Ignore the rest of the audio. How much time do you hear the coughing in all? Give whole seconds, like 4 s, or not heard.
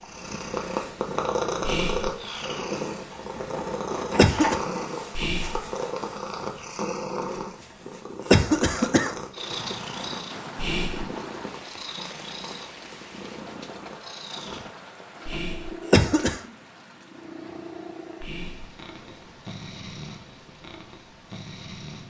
3 s.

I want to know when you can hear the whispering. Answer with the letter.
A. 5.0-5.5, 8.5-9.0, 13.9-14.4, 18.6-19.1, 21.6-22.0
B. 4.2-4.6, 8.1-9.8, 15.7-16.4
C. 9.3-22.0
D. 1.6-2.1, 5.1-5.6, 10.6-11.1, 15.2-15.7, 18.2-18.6
D.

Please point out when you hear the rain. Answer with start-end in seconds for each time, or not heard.
9.3-22.0.